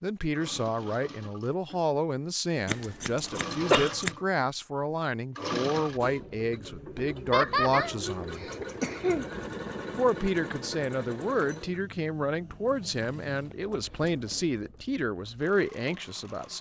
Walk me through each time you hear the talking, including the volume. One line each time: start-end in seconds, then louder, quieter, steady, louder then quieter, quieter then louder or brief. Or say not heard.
0.0-8.4 steady
9.9-16.5 steady.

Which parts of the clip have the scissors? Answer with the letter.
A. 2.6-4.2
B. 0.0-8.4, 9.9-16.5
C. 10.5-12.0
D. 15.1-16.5
A.